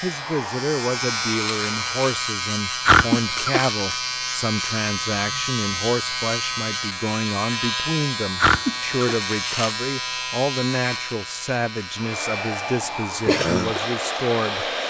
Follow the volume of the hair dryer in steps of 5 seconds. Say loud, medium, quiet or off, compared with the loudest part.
medium, off, loud.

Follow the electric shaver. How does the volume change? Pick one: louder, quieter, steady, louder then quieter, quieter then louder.
quieter.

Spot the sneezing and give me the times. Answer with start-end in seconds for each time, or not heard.
2.9-3.6, 8.4-9.2.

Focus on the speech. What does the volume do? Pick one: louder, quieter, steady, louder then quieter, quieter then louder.
steady.